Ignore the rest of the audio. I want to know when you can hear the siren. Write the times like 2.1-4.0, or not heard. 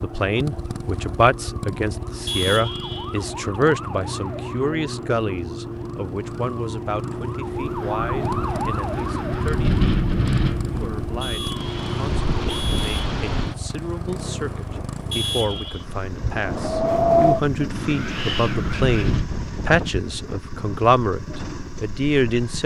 0.0-12.7.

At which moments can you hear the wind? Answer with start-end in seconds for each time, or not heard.
7.5-22.6.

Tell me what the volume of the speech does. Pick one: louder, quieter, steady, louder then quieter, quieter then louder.
quieter then louder.